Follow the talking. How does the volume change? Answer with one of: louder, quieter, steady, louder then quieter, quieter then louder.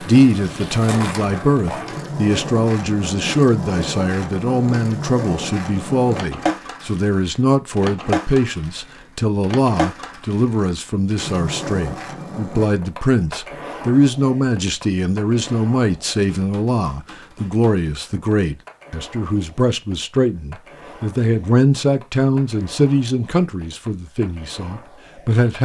steady.